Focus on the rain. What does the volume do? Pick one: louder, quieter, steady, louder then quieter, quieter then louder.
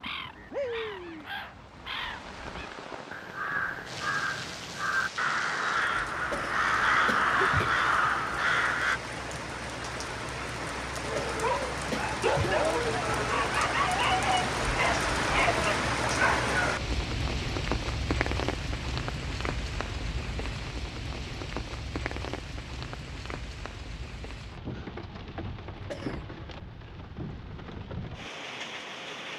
louder then quieter.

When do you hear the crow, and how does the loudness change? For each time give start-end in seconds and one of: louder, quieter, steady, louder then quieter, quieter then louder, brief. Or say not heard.
0.0-9.0 louder.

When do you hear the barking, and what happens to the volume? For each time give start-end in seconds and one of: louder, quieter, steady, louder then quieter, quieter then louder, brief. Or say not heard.
11.1-16.8 steady.